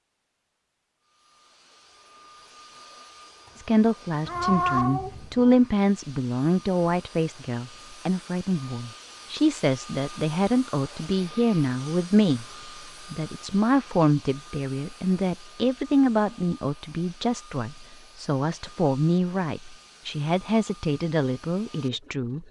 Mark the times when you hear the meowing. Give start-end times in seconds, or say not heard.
4.2-5.5.